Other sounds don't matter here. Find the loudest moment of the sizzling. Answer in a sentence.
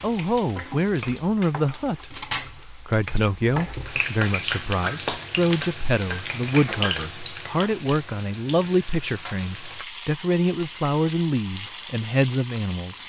The loudest moment of the sizzling is at 5 seconds.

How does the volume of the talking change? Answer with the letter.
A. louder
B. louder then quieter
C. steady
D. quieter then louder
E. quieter
C.